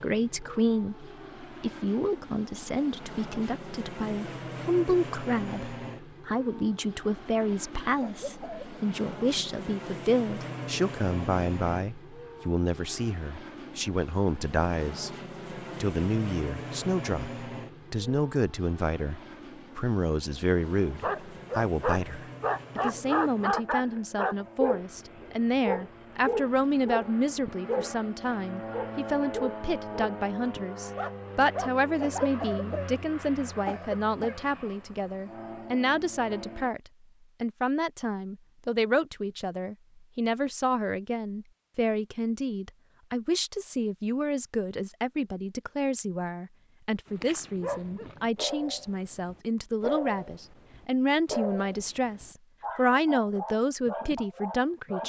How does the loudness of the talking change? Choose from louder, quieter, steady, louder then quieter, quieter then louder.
steady.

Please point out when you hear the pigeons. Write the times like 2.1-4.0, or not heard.
not heard.